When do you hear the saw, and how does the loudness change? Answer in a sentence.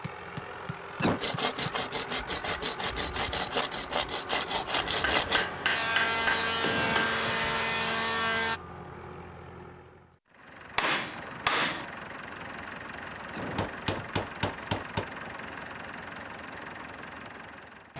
The saw can be heard from 1.2 to 8.6 s, at a steady volume.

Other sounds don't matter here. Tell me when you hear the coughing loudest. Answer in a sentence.
The loudest moment of the coughing is at 1 second.